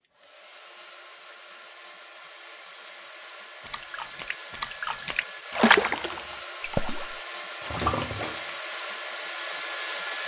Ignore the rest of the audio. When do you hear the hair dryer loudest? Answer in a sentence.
The volume of the hair dryer peaks at 10 seconds.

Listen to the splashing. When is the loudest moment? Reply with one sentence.
The loudest moment of the splashing is at 6 seconds.